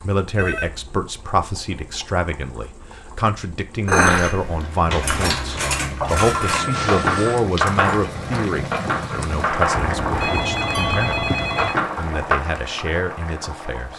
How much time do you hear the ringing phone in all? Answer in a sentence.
You can hear the ringing phone for 4 seconds altogether.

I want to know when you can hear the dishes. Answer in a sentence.
You can hear the dishes from 3.9 to 12.4 s.